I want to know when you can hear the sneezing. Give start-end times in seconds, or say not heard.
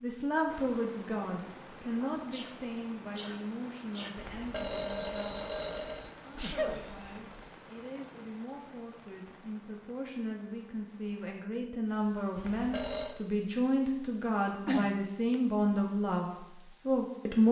2.0-4.1, 6.3-7.2, 14.7-15.3.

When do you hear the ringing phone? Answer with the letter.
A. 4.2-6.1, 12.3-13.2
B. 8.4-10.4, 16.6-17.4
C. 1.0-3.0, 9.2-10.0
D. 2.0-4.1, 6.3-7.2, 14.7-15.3
A.